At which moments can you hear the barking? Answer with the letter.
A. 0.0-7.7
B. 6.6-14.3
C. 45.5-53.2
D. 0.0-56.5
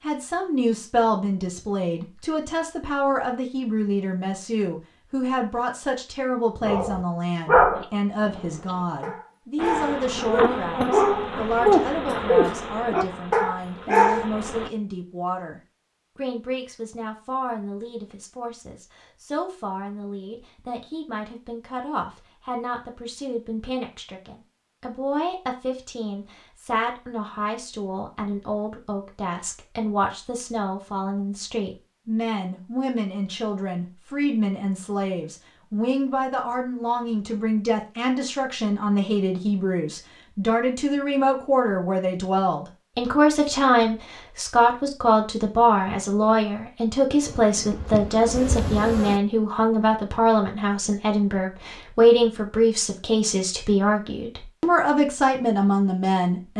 B.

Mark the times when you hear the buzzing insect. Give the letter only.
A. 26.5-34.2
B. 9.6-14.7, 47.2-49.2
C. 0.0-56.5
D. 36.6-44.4
B.